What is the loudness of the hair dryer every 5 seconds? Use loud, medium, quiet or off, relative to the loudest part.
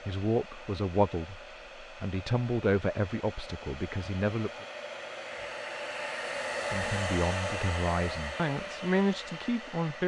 medium, loud.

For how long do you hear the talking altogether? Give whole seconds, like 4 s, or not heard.
8 s.